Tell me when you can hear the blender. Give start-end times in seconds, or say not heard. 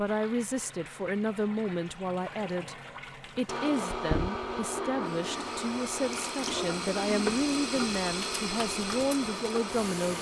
3.5-10.1.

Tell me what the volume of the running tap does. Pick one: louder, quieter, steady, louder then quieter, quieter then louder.
louder.